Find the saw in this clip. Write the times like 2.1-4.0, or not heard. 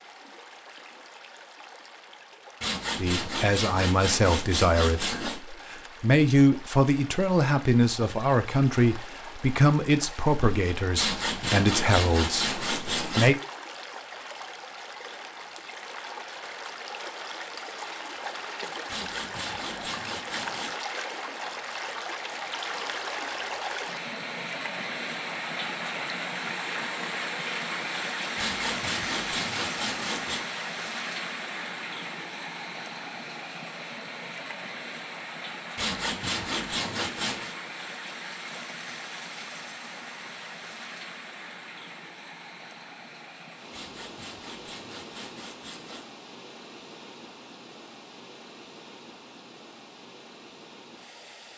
2.6-5.4, 10.9-13.3, 18.9-20.7, 28.4-30.4, 35.8-37.5, 43.7-46.1.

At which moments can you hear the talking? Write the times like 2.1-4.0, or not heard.
3.0-13.4.